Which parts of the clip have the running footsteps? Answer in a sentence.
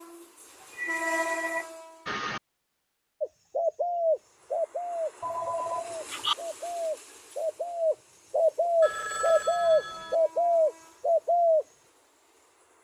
The running footsteps can't be heard in this clip.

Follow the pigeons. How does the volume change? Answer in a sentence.
The loudness of the pigeons goes down, then up.